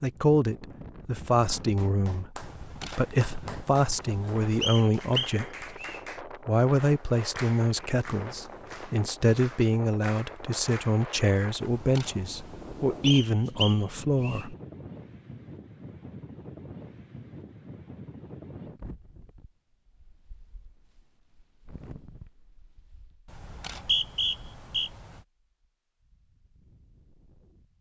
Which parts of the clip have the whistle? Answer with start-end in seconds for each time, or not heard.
4.6-6.0, 13.1-14.4, 23.4-24.9.